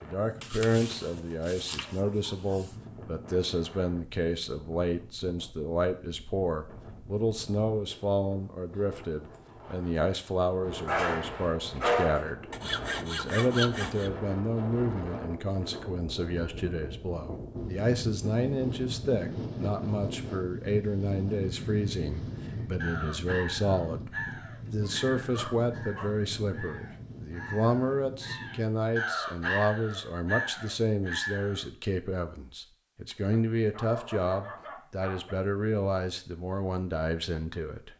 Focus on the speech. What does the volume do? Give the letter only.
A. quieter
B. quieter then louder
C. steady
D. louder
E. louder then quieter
C.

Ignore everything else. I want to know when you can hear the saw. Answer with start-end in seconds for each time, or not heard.
12.5-14.1.